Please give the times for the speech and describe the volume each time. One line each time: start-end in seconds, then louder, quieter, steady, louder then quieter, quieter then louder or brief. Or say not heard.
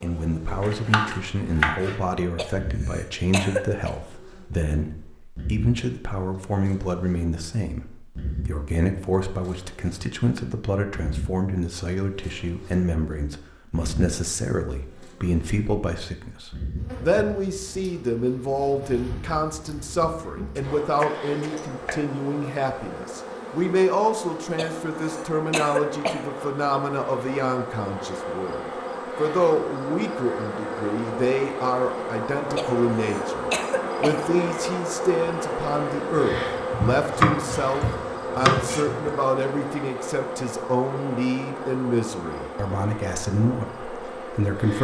0.0-44.7 steady.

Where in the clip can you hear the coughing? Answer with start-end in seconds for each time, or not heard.
2.4-3.9, 24.6-26.2, 32.5-34.2.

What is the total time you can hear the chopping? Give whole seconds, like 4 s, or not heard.
6 s.